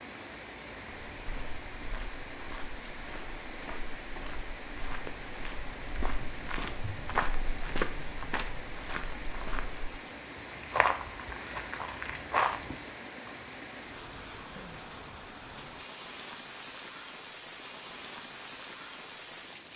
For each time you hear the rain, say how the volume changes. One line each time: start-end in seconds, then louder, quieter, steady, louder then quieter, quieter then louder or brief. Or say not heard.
0.0-19.7 steady.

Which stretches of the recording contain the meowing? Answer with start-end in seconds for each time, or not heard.
not heard.